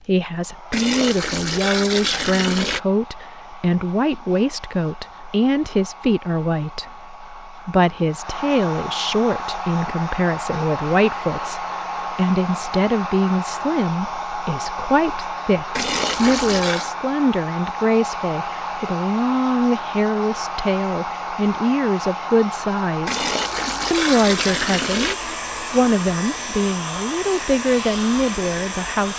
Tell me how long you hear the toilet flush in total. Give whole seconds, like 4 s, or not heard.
5 s.